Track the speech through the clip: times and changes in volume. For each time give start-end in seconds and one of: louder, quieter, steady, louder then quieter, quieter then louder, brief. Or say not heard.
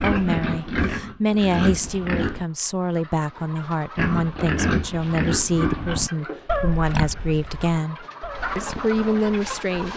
0.0-9.9 steady.